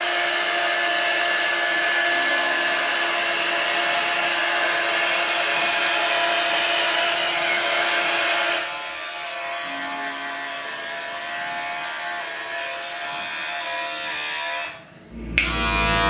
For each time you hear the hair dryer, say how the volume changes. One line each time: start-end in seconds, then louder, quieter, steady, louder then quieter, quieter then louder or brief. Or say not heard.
0.0-13.9 quieter.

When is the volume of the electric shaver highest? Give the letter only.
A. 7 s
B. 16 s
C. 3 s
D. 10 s
B.